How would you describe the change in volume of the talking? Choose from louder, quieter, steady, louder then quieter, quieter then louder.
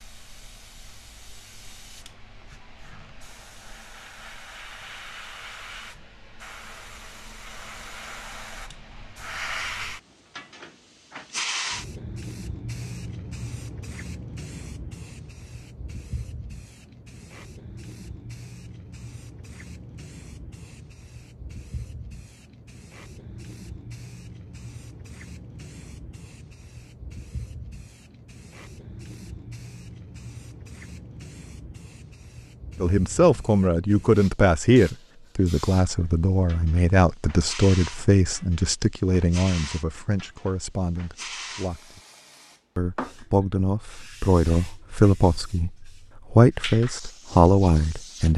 quieter then louder.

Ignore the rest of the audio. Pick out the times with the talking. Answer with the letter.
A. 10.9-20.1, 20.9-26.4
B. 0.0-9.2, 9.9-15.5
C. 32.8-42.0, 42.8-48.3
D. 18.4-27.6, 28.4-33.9
C.